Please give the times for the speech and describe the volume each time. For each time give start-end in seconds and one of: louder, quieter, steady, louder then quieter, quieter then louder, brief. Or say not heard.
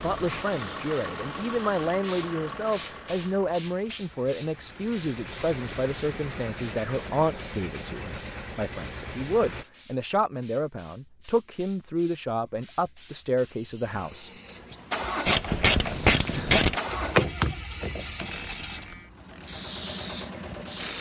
0.0-14.8 steady.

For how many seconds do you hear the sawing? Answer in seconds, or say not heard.
not heard.